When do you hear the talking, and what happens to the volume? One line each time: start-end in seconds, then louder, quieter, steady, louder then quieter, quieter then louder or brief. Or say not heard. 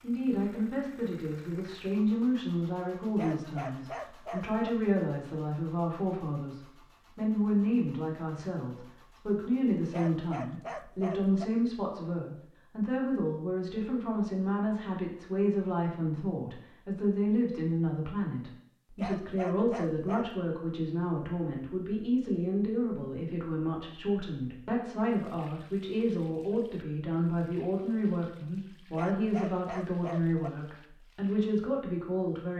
0.0-32.5 steady.